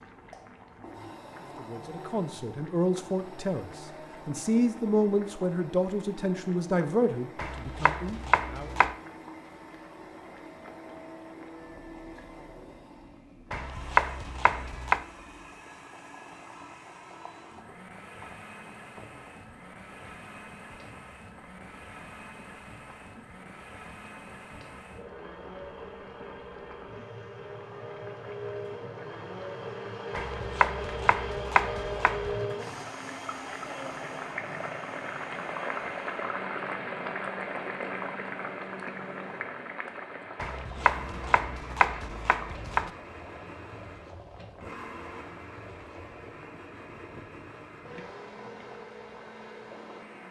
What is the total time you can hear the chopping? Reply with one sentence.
You can hear the chopping for 8 seconds altogether.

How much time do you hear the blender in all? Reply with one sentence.
You can hear the blender for 50 seconds altogether.